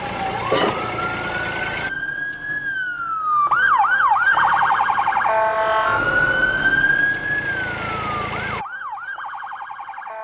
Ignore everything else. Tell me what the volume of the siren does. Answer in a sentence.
The loudness of the siren goes up, then down.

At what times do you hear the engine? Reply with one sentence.
You can hear the engine from 0.0 to 1.9 s and from 4.3 to 8.7 s.